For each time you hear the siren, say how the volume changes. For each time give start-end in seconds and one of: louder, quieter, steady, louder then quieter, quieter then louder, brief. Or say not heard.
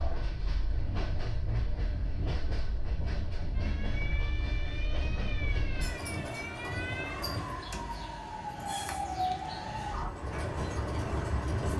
3.5-10.1 louder.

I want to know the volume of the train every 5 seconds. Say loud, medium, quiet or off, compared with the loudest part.
medium, medium, loud.